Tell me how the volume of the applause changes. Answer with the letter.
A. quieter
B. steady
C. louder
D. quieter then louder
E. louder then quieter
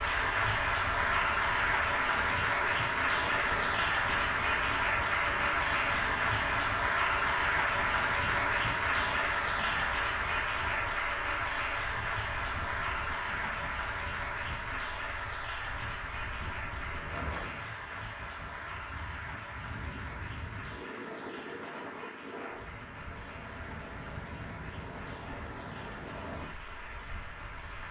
A.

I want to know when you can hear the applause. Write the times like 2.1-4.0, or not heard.
0.0-27.8.